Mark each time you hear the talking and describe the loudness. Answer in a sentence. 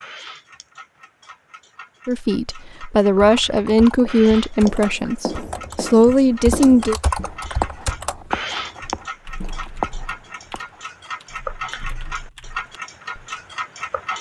The talking can be heard from 2.0 to 7.0 s, getting quieter then louder.